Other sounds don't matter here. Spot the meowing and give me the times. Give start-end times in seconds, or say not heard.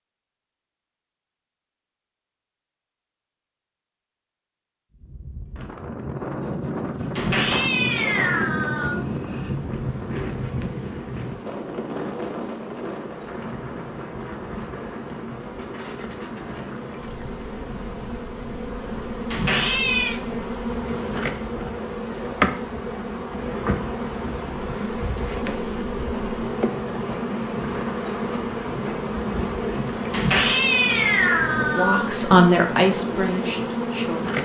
7.2-9.0, 19.3-20.2, 30.1-32.1.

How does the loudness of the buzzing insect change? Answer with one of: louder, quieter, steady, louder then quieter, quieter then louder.
louder.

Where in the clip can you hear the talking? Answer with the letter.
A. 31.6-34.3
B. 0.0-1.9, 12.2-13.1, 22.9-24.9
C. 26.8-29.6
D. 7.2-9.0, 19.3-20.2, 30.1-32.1
A.